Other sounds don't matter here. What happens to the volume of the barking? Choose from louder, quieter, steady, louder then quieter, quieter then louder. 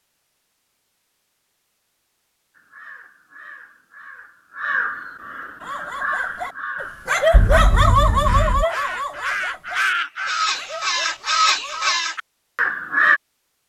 louder then quieter.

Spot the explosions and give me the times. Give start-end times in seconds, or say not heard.
7.3-8.7.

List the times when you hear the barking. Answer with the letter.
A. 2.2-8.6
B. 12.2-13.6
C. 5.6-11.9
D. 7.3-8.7
C.